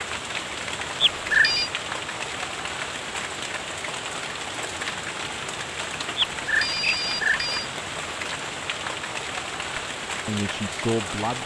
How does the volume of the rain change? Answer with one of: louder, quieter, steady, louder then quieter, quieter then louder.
steady.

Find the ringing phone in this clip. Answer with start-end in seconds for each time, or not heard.
1.0-1.7, 6.2-7.7.